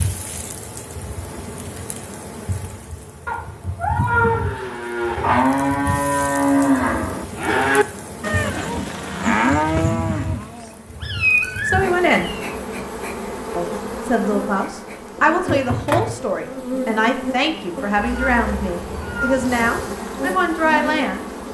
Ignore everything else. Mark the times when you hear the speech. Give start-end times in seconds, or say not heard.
11.7-12.3, 13.6-21.2.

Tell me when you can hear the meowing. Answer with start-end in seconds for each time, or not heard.
3.2-4.7, 10.6-12.6, 17.9-19.9.